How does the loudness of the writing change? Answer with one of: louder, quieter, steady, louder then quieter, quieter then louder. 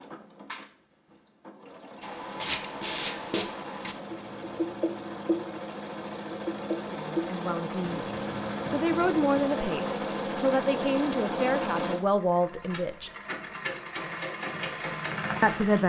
quieter.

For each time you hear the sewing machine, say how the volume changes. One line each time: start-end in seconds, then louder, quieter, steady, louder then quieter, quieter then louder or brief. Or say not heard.
0.0-15.8 louder.